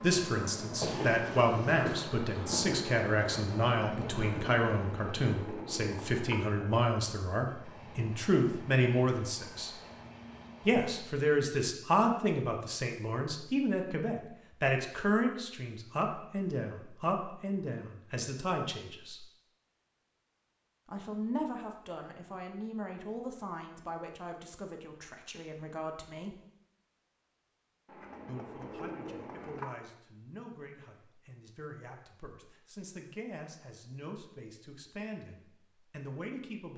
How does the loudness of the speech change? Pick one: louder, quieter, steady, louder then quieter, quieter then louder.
quieter.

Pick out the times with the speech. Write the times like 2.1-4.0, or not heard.
0.0-9.7, 10.7-19.2, 20.9-26.4, 28.2-36.7.